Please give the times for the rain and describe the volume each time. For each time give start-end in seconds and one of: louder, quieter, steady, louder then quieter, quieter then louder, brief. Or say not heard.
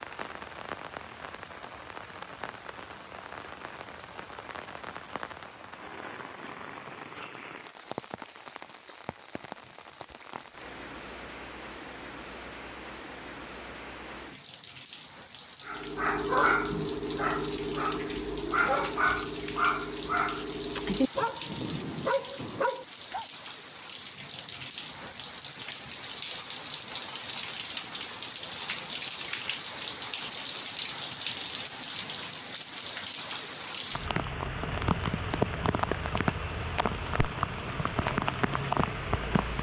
0.0-39.5 louder.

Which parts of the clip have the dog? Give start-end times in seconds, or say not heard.
15.7-23.2.